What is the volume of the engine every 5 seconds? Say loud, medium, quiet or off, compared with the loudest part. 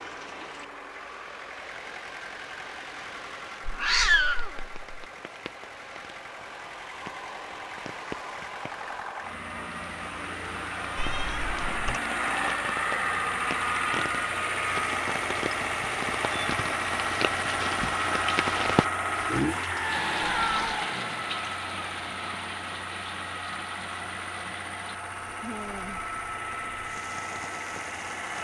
quiet, medium, loud, loud, medium, medium.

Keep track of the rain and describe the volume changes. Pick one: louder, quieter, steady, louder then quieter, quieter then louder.
louder then quieter.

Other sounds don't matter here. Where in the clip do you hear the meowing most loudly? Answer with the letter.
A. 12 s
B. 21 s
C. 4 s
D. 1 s
C.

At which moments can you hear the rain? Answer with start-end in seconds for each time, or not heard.
0.0-28.3.